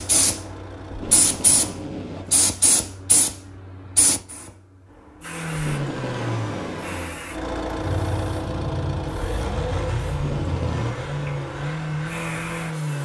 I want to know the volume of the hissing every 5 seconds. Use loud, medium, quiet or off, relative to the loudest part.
loud, medium, medium.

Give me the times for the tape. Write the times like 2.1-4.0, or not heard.
0.9-2.5, 5.5-7.1, 10.1-10.9.